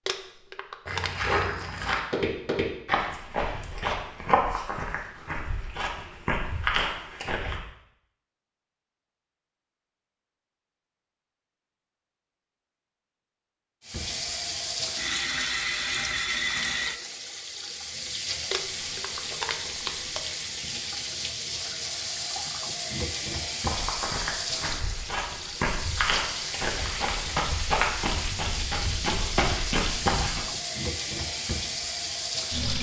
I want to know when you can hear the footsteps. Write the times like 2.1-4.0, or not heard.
0.8-7.6, 23.6-30.4.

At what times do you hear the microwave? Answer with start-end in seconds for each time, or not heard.
not heard.